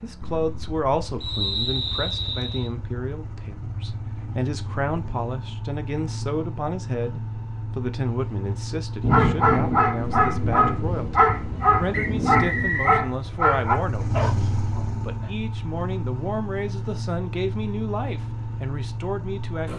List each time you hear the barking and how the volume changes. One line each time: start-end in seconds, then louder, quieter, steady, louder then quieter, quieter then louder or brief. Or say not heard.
9.1-15.3 quieter.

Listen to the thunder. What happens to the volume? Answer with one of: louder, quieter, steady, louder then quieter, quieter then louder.
quieter then louder.